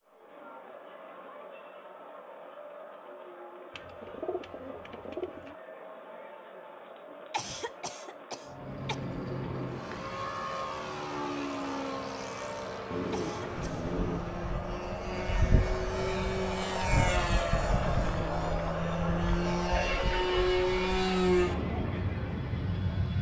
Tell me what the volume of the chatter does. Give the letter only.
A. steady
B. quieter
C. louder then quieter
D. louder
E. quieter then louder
D.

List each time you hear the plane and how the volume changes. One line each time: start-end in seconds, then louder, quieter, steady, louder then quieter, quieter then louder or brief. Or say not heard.
8.4-23.1 louder.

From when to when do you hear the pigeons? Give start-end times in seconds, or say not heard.
3.8-5.5, 12.9-14.6.